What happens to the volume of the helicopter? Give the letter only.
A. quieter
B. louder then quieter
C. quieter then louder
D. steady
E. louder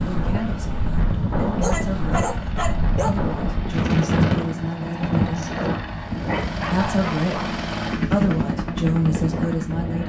E.